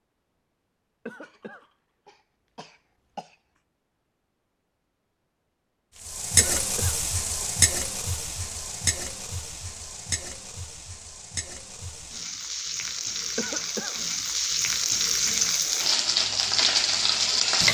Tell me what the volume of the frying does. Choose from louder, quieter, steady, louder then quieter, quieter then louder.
quieter then louder.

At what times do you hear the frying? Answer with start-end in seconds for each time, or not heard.
6.0-17.6.